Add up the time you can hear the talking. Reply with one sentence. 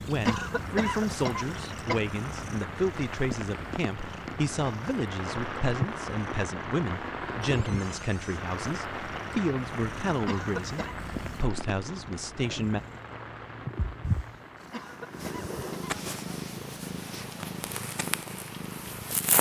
The talking can be heard for 13 seconds in total.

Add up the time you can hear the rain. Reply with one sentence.
You can hear the rain for 19 seconds altogether.